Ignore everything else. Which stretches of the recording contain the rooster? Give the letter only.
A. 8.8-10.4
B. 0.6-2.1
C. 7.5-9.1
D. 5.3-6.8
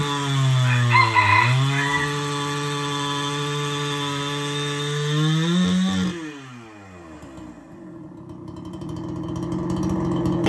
B.